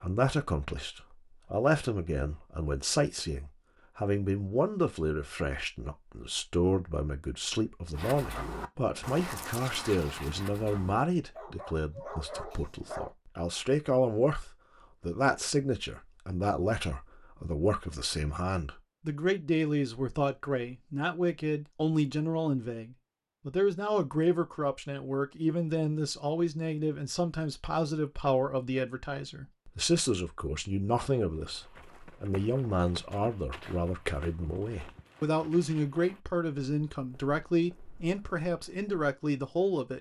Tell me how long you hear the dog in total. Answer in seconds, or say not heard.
5 s.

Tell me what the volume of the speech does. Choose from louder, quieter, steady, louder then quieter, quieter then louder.
steady.